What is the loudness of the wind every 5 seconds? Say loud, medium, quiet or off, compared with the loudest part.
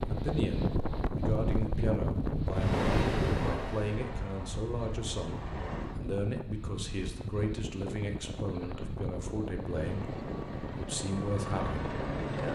loud, medium, medium.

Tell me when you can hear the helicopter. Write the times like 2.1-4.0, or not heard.
2.5-6.0, 9.6-12.5.